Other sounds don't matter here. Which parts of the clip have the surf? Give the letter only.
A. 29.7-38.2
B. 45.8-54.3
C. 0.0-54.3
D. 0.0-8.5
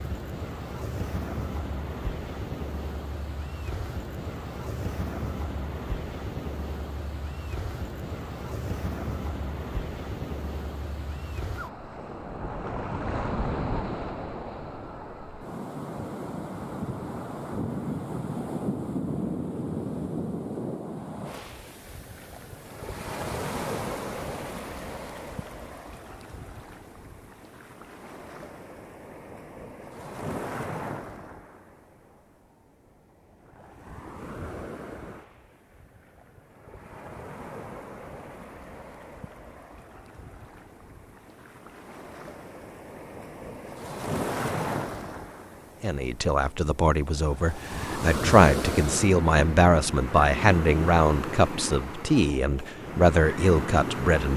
C.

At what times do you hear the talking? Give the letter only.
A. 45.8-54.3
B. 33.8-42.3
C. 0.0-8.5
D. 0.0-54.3
A.